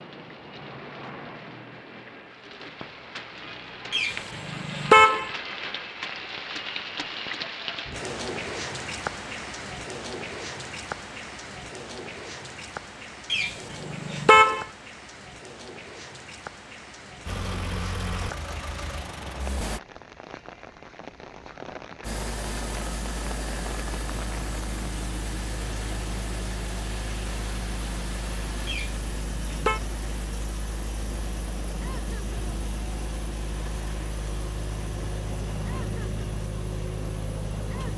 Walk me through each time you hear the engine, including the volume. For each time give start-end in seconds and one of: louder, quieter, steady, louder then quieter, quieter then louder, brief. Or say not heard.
17.2-19.8 brief
22.0-37.9 steady.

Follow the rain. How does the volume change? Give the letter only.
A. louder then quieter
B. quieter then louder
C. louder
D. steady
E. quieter
E.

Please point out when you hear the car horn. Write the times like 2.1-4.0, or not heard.
3.9-5.3, 13.3-14.7, 28.6-29.8.